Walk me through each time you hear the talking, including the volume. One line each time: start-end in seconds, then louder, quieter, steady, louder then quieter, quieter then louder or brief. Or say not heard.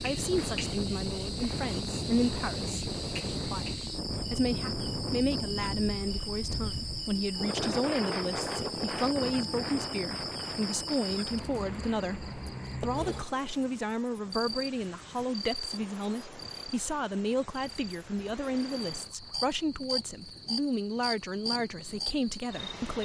0.0-23.0 steady.